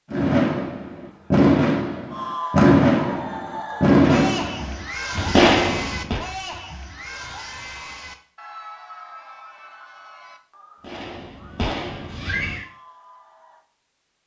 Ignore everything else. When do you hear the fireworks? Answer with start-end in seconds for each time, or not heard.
0.1-6.2, 10.8-12.7.